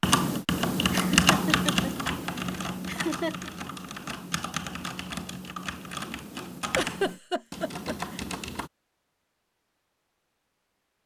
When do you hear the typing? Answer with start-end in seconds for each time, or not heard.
0.0-8.7.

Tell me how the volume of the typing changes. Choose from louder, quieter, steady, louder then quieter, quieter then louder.
quieter.